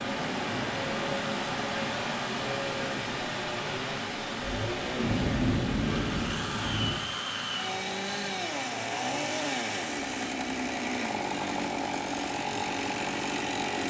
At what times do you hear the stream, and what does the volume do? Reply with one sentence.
The stream can be heard from 0.0 to 13.8 s, getting quieter.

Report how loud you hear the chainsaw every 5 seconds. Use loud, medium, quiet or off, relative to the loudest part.
medium, loud, loud.